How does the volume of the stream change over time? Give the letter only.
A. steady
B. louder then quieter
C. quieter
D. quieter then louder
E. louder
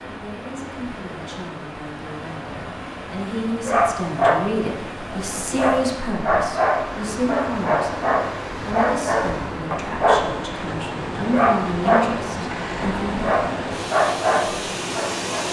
E.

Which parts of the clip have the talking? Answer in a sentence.
You can hear the talking from 0.0 to 13.4 s.